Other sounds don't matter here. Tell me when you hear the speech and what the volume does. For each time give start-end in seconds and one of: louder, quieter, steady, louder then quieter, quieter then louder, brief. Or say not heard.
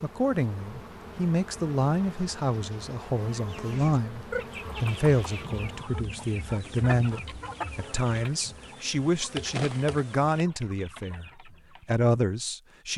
0.0-12.9 steady.